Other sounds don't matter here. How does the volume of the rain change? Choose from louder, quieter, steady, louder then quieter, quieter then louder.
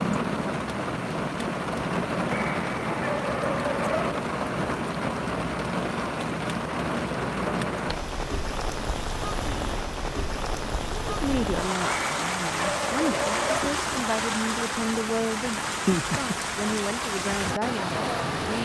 steady.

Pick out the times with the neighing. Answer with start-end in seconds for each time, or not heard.
not heard.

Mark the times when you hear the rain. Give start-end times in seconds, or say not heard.
0.0-18.5.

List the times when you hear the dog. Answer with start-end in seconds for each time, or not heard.
2.1-4.2, 11.7-13.7.